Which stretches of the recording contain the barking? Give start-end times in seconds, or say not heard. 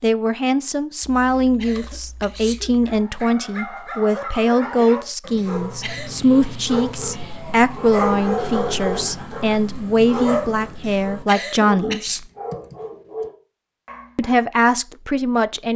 2.8-14.4.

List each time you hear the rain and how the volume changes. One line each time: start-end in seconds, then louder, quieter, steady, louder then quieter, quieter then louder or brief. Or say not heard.
not heard.